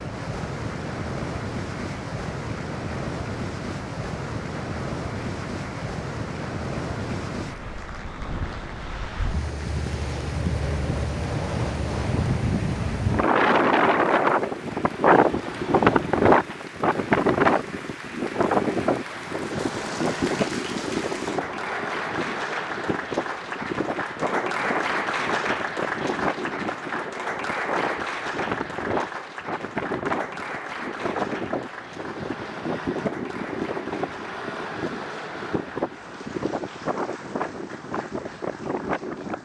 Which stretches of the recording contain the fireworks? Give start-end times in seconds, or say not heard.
not heard.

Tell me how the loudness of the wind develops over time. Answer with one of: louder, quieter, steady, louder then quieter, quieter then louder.
louder then quieter.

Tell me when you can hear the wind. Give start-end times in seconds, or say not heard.
0.0-39.3.